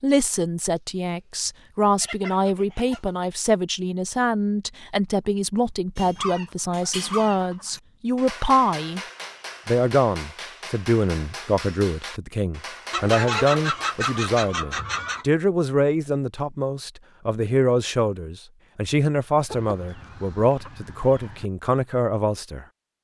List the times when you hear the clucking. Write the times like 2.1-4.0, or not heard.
1.4-3.1, 6.2-7.8, 12.9-15.2, 19.4-21.5.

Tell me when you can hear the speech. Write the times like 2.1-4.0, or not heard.
0.0-9.0, 9.7-22.6.